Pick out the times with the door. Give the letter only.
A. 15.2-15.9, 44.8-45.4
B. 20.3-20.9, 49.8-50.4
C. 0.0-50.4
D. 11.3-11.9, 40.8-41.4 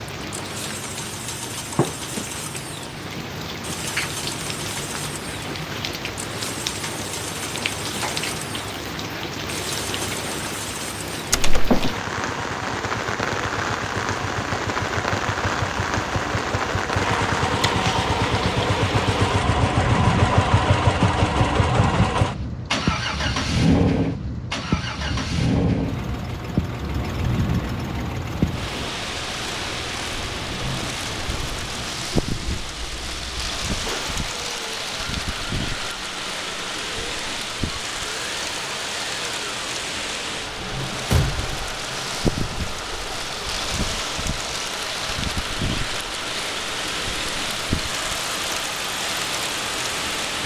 D.